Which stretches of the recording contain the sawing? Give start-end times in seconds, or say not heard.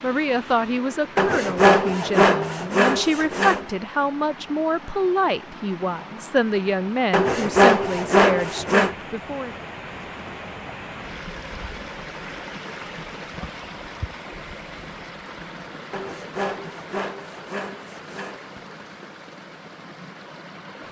1.1-3.6, 7.1-8.9, 15.9-18.4.